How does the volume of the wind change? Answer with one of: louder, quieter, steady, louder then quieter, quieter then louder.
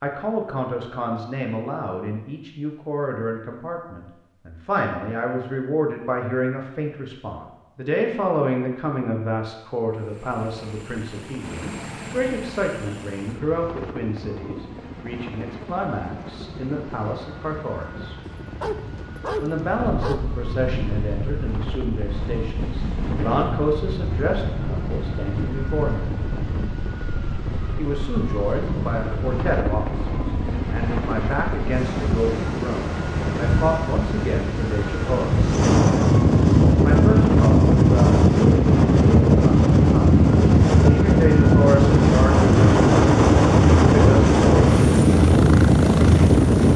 louder.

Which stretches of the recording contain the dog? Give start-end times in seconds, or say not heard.
18.4-20.2.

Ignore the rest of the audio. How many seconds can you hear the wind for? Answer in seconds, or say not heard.
27 s.